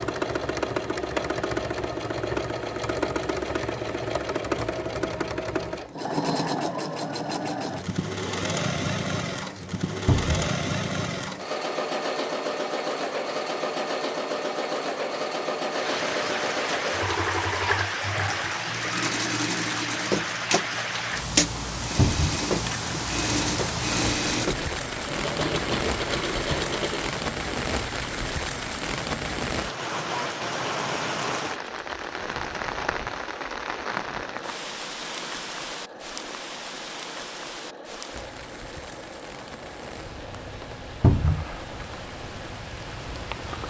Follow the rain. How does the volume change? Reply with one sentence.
The loudness of the rain goes down.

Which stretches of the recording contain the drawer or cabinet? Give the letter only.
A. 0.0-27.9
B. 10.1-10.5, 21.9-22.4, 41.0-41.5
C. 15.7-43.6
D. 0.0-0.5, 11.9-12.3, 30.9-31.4
B.